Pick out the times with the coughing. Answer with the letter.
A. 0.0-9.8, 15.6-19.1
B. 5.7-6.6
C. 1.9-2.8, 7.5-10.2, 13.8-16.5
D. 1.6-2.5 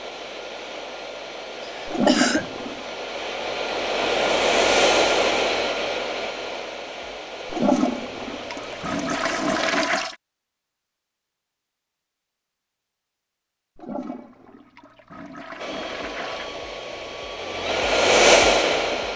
D.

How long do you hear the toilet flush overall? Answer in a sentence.
The toilet flush can be heard for 6 seconds in total.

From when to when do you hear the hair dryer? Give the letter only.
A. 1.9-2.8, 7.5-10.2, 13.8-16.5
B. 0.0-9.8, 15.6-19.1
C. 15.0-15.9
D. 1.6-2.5
B.